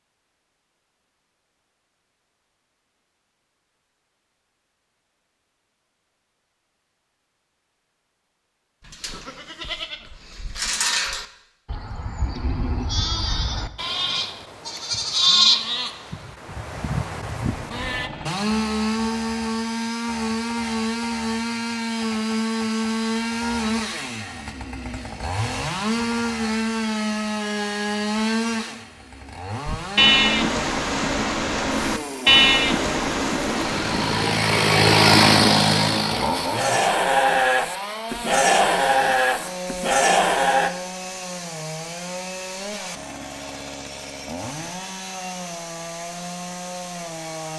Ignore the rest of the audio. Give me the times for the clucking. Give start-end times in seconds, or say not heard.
not heard.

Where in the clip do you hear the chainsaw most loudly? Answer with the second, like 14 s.
35 s.